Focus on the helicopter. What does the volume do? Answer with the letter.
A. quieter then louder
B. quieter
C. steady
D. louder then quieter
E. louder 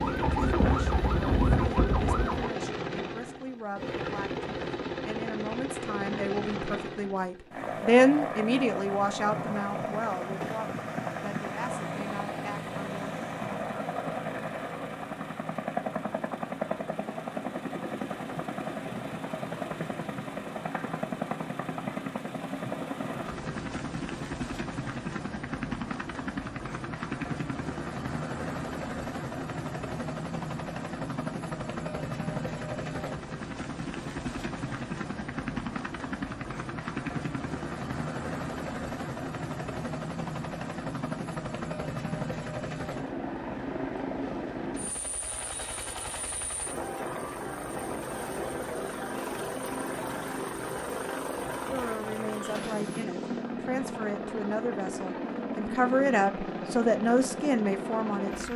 C.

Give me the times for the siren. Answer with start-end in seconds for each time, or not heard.
0.0-2.5.